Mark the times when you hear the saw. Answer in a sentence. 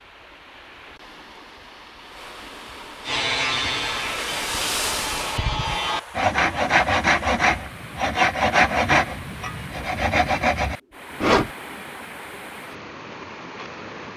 You can hear the saw from 3.0 to 11.5 s.